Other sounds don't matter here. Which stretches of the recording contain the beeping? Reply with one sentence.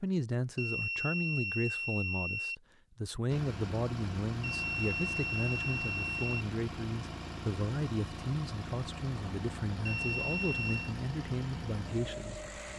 You can hear the beeping from 0.6 to 2.5 s, from 4.4 to 6.5 s and from 9.8 to 10.9 s.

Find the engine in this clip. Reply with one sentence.
You can hear the engine from 3.2 to 12.7 s.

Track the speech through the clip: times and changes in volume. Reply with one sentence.
You can hear the speech from 0.0 to 12.7 s, at a steady volume.